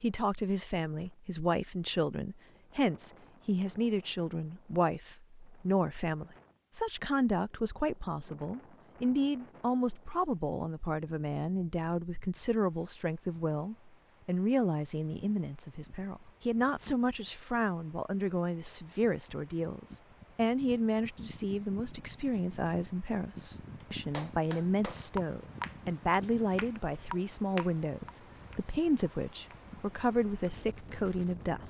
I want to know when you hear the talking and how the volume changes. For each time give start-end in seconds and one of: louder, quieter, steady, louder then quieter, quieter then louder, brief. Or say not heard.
0.0-31.6 steady.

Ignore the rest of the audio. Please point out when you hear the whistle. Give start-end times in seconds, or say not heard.
not heard.